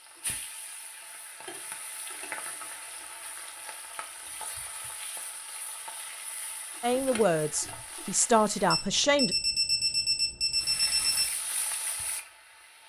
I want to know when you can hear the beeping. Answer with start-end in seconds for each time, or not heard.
8.7-11.2.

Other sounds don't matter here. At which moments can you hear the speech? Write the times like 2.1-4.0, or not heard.
6.8-9.3.